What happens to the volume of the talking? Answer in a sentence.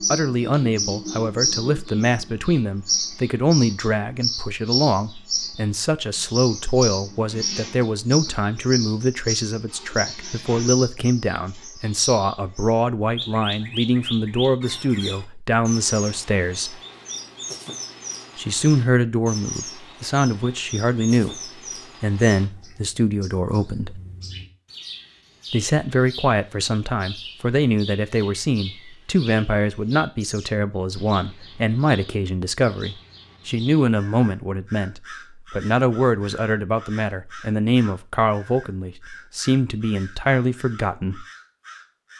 The volume of the talking stays about the same.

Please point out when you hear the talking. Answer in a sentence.
The talking can be heard from 0.0 to 16.8 s, from 18.4 to 24.0 s and from 25.5 to 41.2 s.